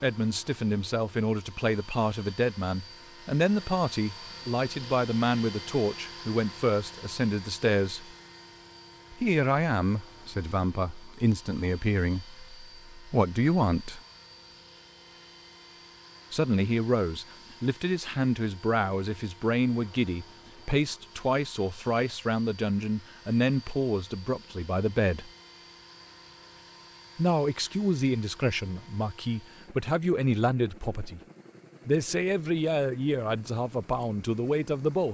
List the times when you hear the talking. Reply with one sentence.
You can hear the talking from 0.0 to 8.2 s, from 9.1 to 14.0 s, from 16.3 to 25.3 s, from 27.1 to 31.2 s and from 31.9 to 35.0 s.